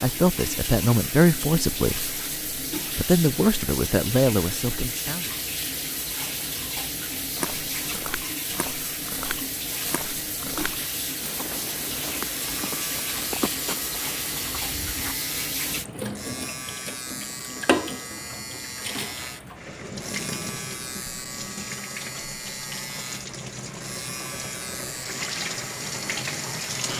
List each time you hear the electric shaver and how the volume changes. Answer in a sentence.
You can hear the electric shaver from 12.4 to 26.9 s, at a steady volume.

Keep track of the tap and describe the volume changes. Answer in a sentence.
The loudness of the tap stays about the same.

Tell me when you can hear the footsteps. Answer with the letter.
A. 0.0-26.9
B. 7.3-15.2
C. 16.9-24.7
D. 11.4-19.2
B.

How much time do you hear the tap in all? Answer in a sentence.
You can hear the tap for 27 seconds altogether.